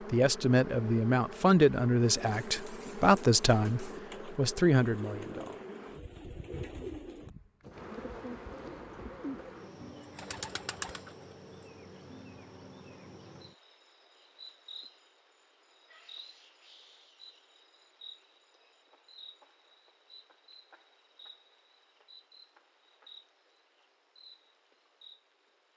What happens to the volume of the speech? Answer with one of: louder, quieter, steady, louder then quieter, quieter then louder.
steady.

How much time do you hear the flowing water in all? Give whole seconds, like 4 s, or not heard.
not heard.